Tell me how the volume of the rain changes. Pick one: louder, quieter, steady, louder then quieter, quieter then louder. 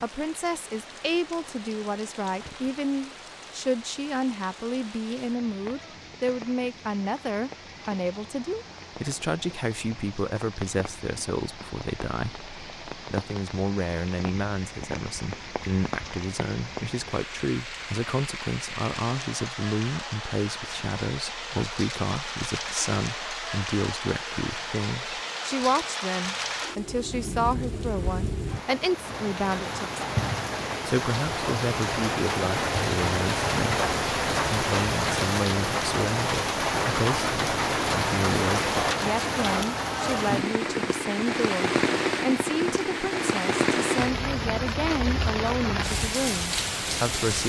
louder.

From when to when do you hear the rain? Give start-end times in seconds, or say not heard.
0.0-47.4.